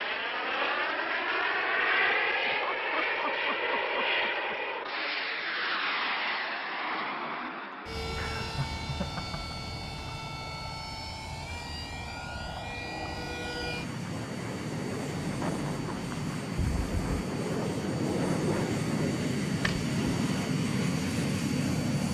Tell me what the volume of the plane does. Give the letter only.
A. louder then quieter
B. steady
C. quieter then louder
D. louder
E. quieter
C.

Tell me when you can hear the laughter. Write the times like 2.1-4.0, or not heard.
2.3-4.5, 8.1-9.6, 15.2-16.4.